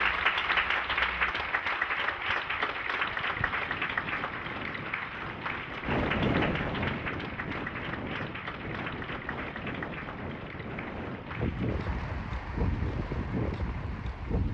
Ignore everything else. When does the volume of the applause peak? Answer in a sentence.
The volume of the applause peaks at 1 second.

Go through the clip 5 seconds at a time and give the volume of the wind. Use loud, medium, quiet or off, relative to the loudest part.
quiet, loud, loud.